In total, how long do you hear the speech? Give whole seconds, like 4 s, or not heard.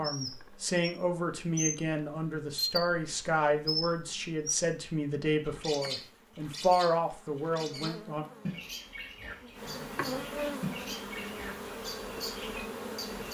8 s.